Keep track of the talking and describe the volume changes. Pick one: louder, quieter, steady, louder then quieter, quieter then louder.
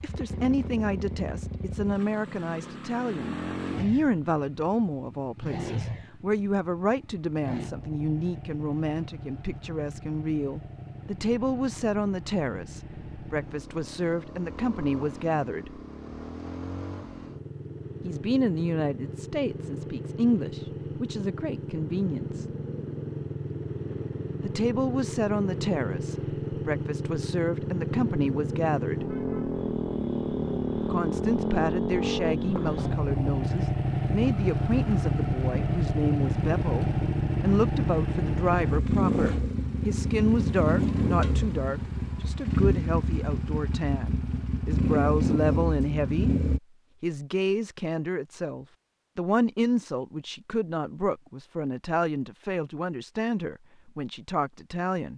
steady.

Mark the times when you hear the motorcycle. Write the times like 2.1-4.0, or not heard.
0.0-46.6.